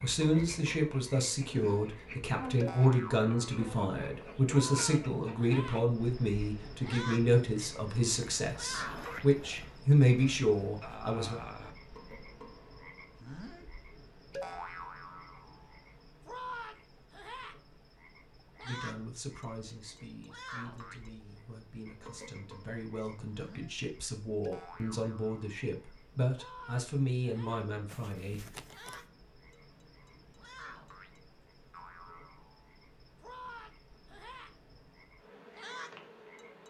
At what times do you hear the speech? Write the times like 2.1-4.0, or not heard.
0.0-11.3, 18.6-28.4.